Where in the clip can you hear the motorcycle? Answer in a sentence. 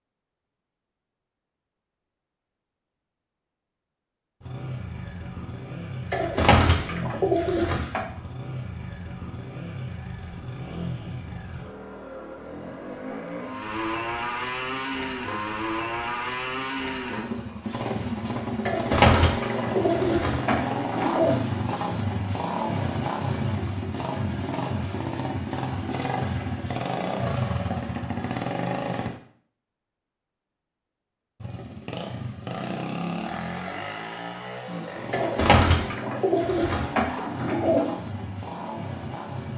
You can hear the motorcycle from 4.4 to 29.2 s and from 31.4 to 39.5 s.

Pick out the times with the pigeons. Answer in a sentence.
You can hear the pigeons from 6.1 to 8.0 s, from 18.6 to 21.4 s and from 35.1 to 37.9 s.